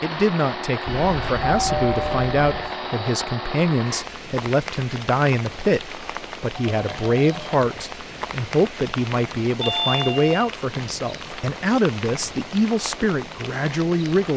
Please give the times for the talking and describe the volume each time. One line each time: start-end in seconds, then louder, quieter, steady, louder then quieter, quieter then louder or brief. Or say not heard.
0.0-14.3 steady.